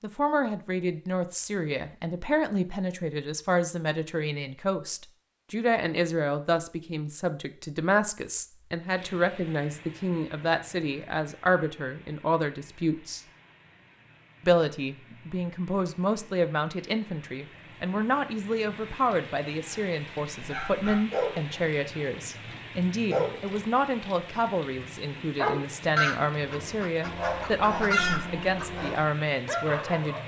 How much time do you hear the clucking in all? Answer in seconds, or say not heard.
3 s.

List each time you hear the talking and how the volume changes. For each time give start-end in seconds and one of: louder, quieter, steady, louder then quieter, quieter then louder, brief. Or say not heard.
0.0-13.2 steady
14.4-30.2 steady.